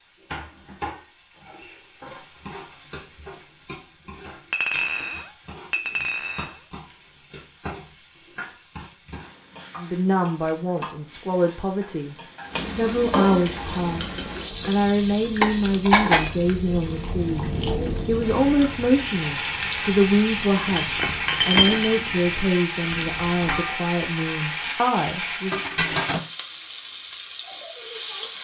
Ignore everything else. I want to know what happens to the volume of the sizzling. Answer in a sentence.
The loudness of the sizzling goes up.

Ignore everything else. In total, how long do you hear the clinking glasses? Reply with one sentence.
The clinking glasses can be heard for 4 seconds in total.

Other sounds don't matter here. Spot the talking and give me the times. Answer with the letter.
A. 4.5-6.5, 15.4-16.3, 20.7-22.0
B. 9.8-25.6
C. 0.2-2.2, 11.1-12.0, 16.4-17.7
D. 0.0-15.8
B.